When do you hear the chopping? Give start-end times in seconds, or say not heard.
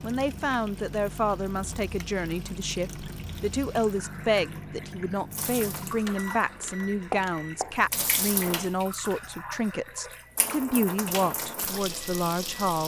6.0-7.8.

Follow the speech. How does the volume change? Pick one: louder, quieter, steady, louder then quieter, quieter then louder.
steady.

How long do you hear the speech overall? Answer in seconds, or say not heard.
13 s.